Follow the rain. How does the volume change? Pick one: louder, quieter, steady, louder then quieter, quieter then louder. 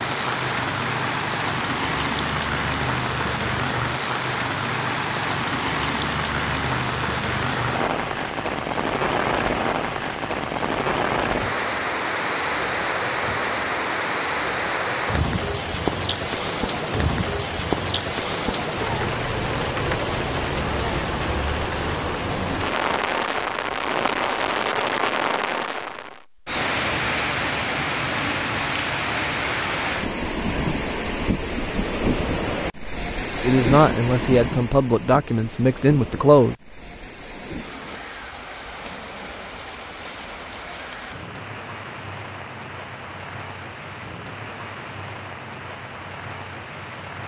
quieter.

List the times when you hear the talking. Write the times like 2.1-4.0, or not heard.
33.4-36.5.